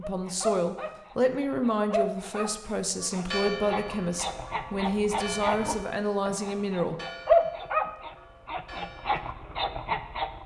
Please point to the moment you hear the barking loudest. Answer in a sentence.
The loudest moment of the barking is at 7 seconds.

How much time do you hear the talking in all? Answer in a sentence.
The talking can be heard for 7 seconds in total.